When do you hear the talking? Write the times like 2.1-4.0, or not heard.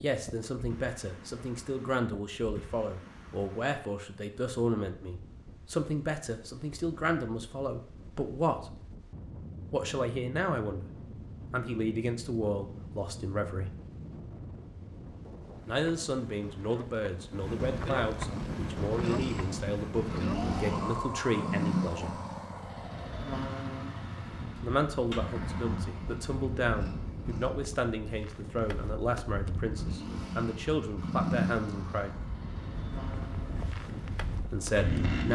0.0-8.8, 9.7-13.8, 15.7-22.2, 24.6-32.1, 34.4-35.3.